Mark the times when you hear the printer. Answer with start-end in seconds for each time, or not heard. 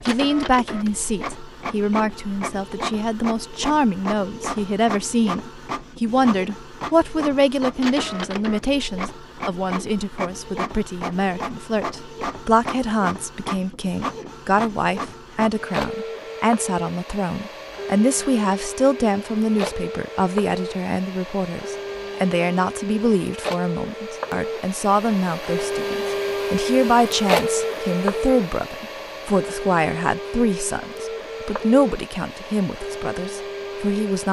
0.0-34.2.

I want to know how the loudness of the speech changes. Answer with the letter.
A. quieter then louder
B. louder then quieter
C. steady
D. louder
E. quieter
C.